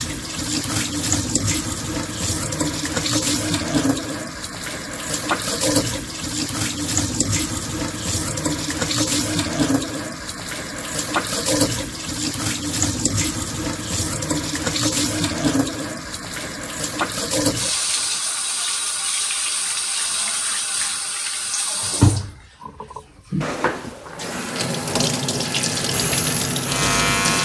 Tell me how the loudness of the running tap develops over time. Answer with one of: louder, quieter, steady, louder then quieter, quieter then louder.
steady.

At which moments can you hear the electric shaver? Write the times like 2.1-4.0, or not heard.
25.9-27.4.